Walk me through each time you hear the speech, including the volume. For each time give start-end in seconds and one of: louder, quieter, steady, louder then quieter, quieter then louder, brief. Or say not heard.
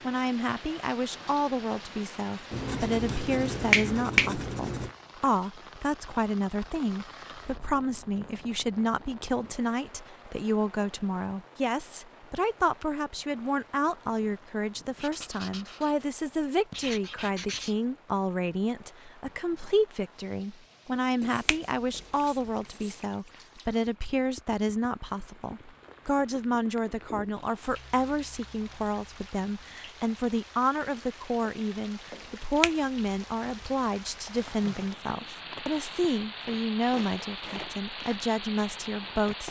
0.0-39.4 steady.